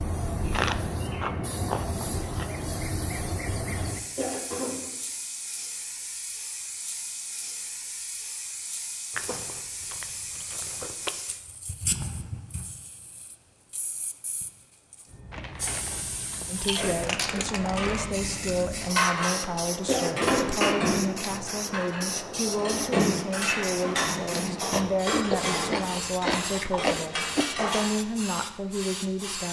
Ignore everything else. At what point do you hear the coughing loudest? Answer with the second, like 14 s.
20 s.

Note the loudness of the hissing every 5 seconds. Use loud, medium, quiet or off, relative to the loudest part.
loud, medium, medium, loud, loud, loud.